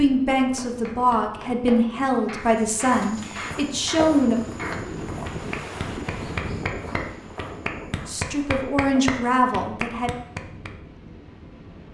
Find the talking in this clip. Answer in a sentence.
The talking can be heard from 0.0 to 4.4 s and from 8.1 to 10.1 s.